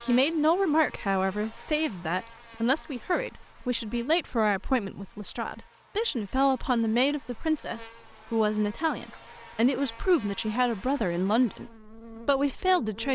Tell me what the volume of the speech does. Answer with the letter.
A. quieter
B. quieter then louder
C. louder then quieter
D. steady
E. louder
D.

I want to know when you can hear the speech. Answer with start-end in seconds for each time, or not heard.
0.0-13.1.